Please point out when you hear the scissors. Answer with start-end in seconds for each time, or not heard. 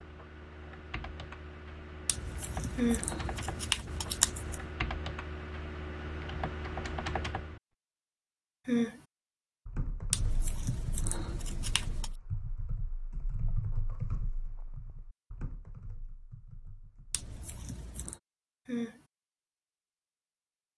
2.0-4.7, 10.1-12.2, 17.1-18.2.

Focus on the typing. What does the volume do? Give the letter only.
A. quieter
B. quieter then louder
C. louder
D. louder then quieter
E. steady
D.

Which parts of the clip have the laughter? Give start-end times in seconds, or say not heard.
not heard.